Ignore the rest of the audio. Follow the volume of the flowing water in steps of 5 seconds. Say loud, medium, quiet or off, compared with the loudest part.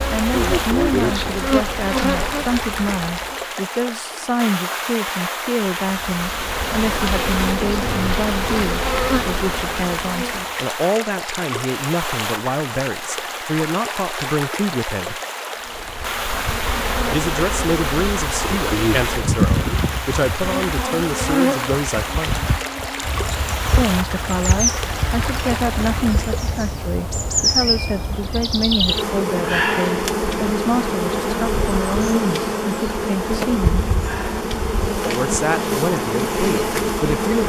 loud, loud, loud, loud, loud, loud, off, off.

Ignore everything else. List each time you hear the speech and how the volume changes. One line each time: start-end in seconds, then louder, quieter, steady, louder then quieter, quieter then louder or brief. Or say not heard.
0.1-15.2 steady
17.1-22.4 steady
23.8-33.9 steady
35.0-37.4 brief.